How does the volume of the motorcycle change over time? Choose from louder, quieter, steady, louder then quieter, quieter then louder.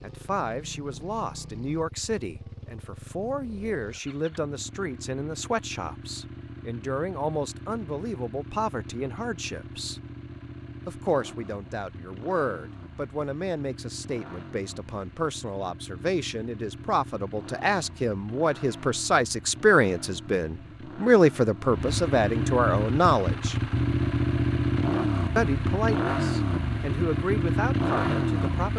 louder.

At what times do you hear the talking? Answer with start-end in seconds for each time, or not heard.
0.0-10.0, 10.8-23.6, 25.4-28.7.